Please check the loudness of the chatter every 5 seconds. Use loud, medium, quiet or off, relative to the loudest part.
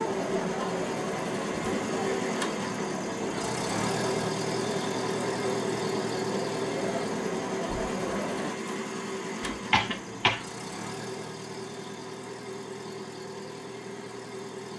loud, loud, off.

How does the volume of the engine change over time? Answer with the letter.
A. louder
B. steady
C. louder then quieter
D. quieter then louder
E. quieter
E.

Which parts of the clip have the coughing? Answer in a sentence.
The coughing can be heard from 9.4 to 10.4 s.